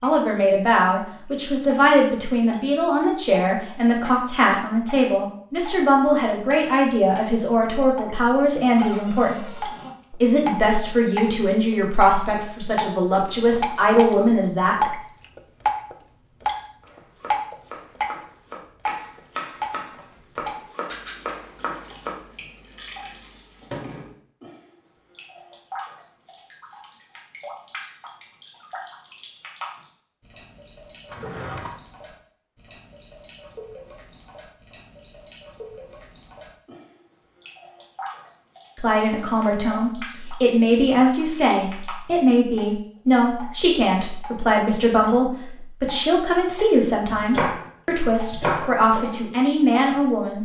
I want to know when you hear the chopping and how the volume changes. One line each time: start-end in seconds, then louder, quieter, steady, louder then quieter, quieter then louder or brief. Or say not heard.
16.8-22.4 louder
47.1-49.0 brief.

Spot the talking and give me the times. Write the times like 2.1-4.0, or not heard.
0.0-14.8, 38.8-50.3.